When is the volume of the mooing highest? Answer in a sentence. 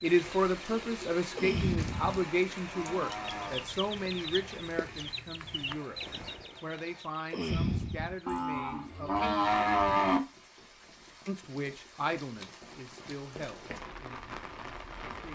The volume of the mooing peaks at 10 seconds.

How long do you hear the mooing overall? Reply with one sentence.
You can hear the mooing for 4 seconds altogether.